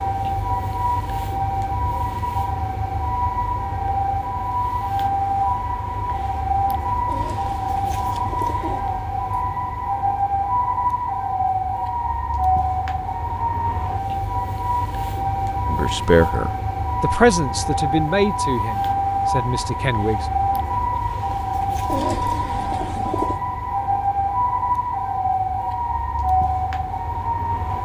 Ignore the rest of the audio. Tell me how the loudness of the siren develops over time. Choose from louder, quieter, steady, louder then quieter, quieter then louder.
steady.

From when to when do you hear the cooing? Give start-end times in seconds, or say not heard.
7.0-8.8, 21.9-23.4.